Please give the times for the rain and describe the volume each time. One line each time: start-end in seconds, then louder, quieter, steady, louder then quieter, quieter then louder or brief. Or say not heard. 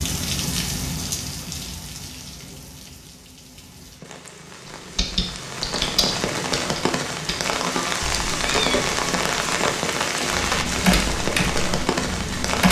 0.0-12.6 quieter then louder.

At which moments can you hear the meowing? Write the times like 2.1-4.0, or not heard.
8.0-9.8.